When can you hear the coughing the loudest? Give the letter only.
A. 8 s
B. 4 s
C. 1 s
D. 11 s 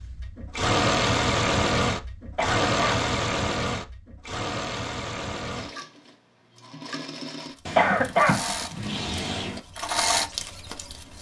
A.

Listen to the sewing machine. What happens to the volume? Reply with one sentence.
The volume of the sewing machine goes down, then up.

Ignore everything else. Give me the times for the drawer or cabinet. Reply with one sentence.
You can hear the drawer or cabinet from 7.7 to 9.6 s.